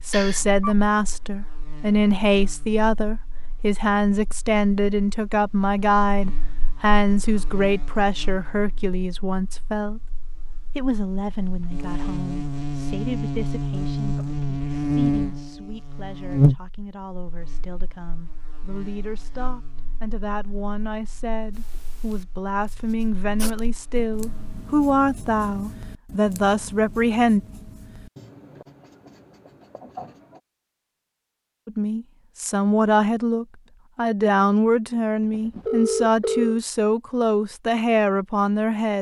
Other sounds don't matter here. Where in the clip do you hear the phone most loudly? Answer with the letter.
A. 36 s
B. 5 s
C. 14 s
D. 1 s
A.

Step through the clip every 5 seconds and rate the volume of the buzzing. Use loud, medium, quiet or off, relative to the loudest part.
quiet, quiet, loud, loud, quiet, off, off, off.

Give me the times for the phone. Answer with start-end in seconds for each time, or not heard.
0.1-0.8, 35.3-36.6.